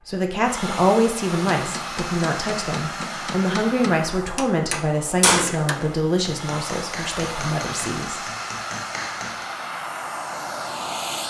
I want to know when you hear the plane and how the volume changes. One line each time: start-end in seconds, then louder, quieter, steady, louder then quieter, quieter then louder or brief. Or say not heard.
0.0-11.2 quieter then louder.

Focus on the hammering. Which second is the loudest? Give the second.
5 s.